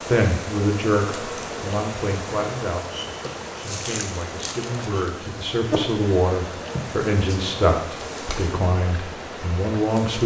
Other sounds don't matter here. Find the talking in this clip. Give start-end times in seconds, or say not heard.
0.1-3.0, 3.6-10.2.